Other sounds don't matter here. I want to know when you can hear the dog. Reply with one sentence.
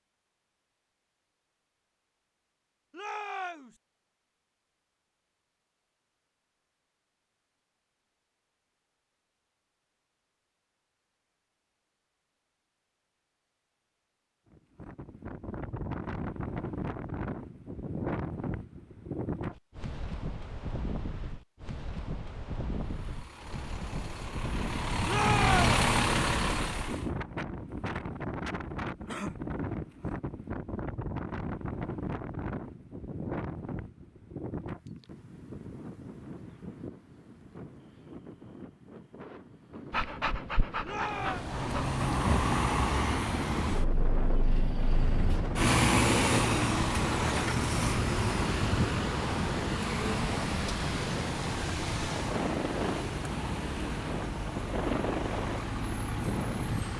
The dog can be heard from 39.9 to 42.5 s.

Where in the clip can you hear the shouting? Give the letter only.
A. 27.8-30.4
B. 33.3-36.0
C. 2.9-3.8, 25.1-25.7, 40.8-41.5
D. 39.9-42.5
C.